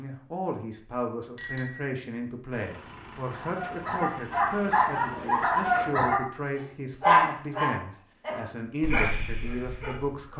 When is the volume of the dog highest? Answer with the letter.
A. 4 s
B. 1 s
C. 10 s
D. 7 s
D.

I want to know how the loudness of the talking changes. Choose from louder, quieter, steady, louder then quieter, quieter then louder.
steady.